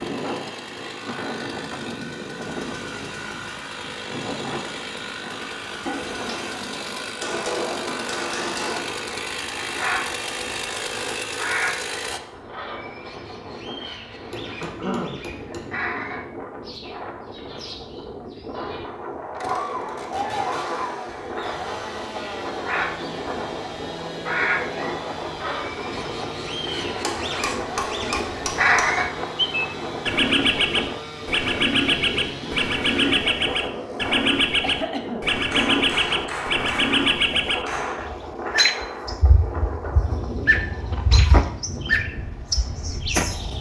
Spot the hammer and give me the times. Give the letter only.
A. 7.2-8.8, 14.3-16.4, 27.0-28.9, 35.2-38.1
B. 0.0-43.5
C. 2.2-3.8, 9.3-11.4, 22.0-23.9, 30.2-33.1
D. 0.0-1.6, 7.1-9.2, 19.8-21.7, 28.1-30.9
A.